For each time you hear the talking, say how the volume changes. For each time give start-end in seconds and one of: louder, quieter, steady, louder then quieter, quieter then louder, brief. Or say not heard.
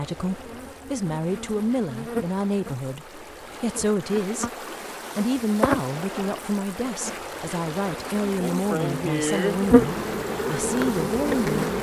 0.0-11.7 steady.